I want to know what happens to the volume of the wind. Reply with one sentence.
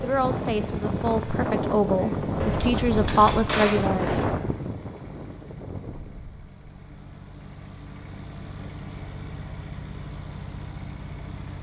The loudness of the wind goes down.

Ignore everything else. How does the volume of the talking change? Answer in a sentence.
The loudness of the talking goes up.